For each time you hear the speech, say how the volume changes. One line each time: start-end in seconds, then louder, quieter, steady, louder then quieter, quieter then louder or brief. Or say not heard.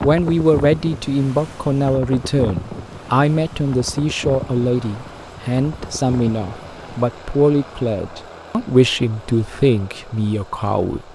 0.0-11.1 steady.